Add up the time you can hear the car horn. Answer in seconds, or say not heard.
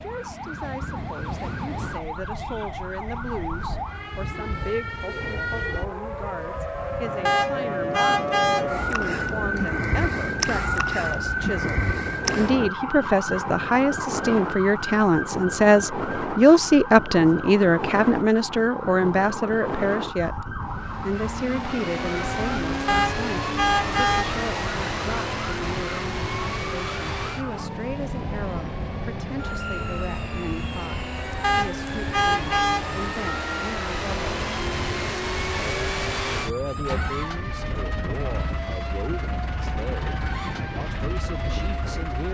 4 s.